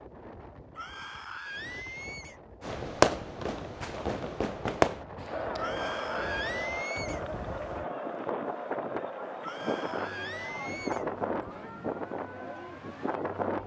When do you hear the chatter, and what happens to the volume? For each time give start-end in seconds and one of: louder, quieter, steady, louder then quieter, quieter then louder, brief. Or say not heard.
5.2-13.6 quieter.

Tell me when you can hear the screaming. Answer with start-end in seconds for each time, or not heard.
0.8-2.4, 5.5-7.2, 9.4-11.1.